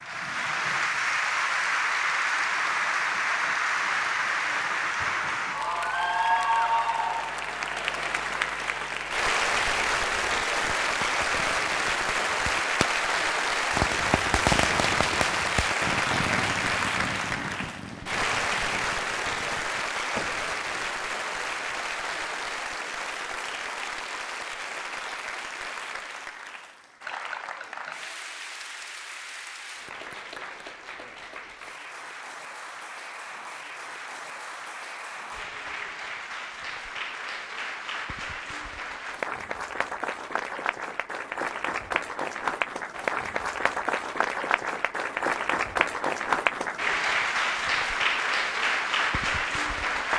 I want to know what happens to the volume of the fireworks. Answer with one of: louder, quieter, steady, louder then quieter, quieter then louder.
louder then quieter.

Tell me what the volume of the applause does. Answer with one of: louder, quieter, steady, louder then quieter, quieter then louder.
quieter then louder.